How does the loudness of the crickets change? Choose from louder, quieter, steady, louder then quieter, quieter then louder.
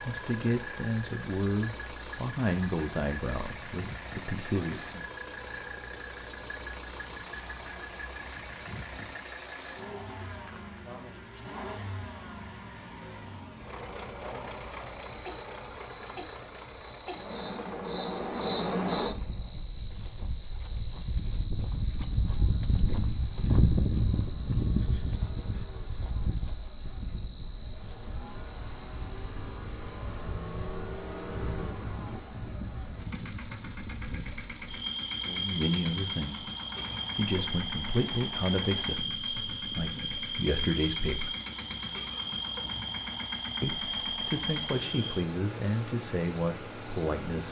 louder then quieter.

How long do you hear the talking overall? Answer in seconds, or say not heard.
14 s.